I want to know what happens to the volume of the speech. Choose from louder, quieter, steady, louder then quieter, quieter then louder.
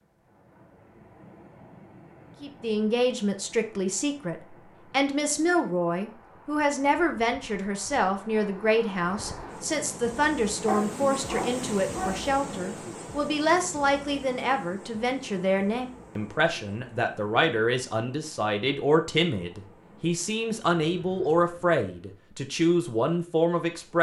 steady.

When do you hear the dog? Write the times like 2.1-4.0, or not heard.
10.7-12.3.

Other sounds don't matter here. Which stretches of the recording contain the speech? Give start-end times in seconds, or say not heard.
2.4-23.9.